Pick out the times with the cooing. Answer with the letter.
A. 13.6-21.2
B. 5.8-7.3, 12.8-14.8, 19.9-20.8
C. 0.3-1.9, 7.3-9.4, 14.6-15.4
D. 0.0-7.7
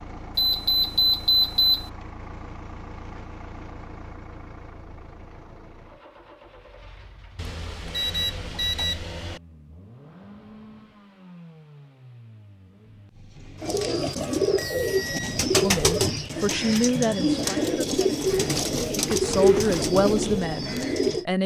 A.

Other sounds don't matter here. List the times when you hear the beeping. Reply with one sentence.
The beeping can be heard from 0.3 to 1.9 s, from 7.3 to 9.4 s and from 14.6 to 15.4 s.